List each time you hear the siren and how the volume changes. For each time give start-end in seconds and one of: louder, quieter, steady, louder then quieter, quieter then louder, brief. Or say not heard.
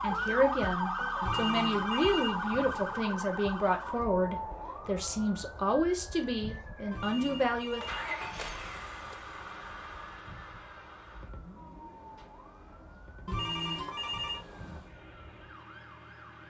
0.0-16.4 quieter.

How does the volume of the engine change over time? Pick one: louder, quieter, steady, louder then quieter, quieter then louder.
quieter.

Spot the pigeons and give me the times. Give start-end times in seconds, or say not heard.
not heard.